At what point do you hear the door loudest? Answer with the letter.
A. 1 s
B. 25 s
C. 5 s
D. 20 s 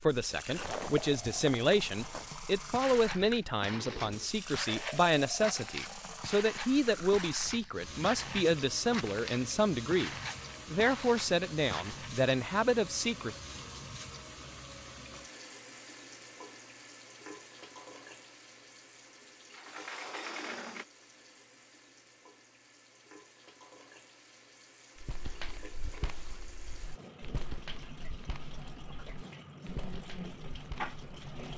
D.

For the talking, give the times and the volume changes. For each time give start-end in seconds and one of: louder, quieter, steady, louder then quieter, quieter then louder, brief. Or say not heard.
0.0-13.3 steady.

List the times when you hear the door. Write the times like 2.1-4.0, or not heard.
3.7-4.3, 19.5-20.9.